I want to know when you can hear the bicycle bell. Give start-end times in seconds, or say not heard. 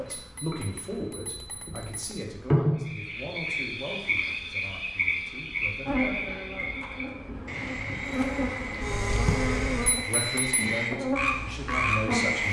0.1-2.2, 9.8-10.6.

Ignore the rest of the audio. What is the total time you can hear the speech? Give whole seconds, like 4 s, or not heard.
8 s.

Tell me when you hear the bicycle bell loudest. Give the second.
10 s.